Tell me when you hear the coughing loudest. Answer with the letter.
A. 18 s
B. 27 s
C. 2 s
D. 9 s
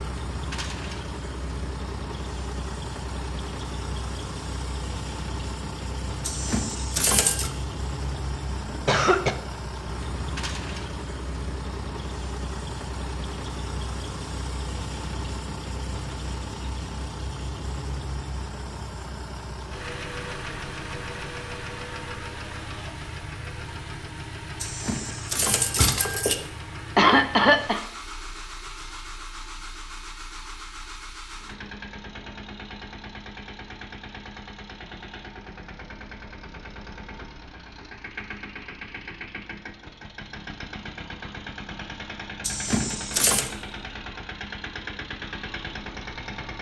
B.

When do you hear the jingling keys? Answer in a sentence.
You can hear the jingling keys from 6.2 to 7.5 s, from 24.6 to 26.4 s and from 42.4 to 43.5 s.